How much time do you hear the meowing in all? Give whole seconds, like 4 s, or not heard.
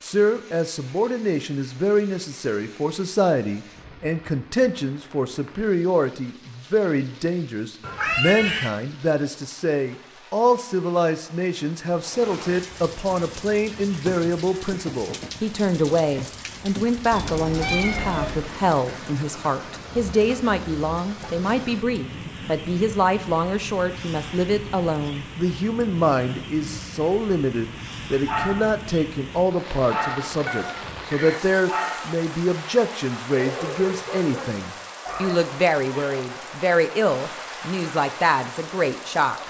4 s.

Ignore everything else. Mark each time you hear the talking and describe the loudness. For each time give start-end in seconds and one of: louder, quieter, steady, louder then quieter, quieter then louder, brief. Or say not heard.
0.0-39.4 steady.